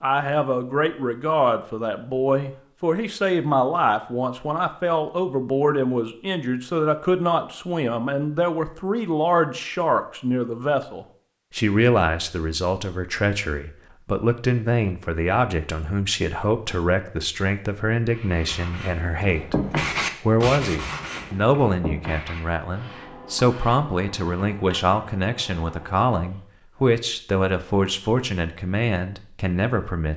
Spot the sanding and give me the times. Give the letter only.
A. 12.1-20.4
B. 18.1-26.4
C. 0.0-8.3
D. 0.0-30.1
B.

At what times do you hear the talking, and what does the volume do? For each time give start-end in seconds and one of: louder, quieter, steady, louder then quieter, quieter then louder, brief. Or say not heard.
0.0-30.1 steady.